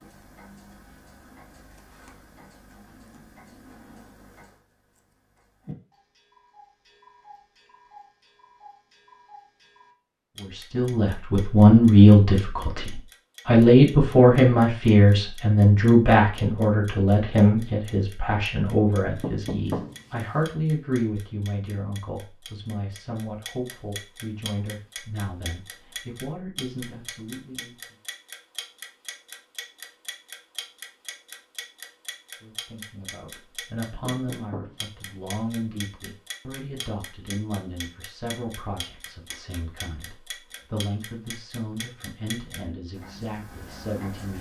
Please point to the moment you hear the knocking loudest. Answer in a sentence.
The volume of the knocking peaks at 20 seconds.